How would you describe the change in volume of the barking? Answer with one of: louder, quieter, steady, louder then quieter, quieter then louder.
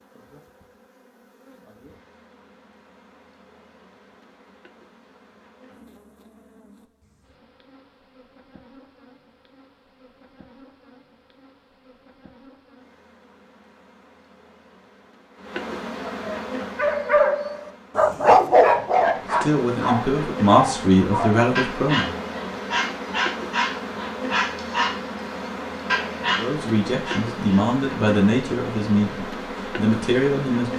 quieter.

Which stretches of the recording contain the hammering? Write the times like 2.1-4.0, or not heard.
not heard.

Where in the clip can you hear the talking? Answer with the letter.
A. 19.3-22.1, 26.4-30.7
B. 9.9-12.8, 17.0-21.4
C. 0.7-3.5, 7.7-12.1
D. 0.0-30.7
A.